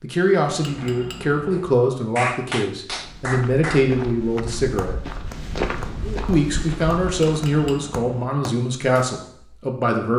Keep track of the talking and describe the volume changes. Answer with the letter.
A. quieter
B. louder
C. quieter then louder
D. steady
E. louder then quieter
D.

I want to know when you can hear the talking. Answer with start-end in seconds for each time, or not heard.
0.0-5.0, 6.2-10.1.